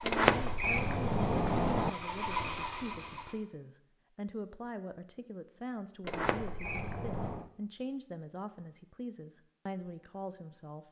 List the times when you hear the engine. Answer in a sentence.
You can hear the engine from 0.0 to 3.4 s.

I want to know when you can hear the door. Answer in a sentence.
You can hear the door from 0.0 to 1.9 s and from 6.0 to 7.5 s.